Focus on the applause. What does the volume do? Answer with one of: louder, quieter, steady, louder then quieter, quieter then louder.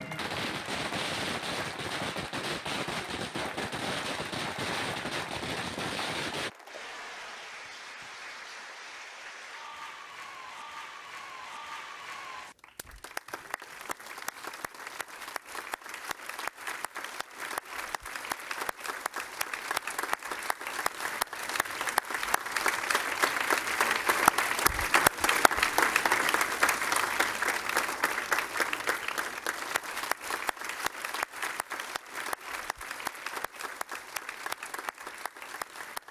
louder then quieter.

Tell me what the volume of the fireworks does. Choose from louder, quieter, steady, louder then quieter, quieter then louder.
steady.